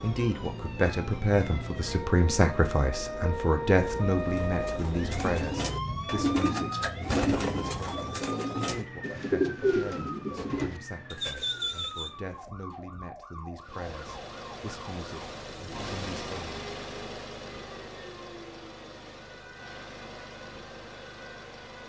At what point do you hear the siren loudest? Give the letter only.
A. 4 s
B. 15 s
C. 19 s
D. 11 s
A.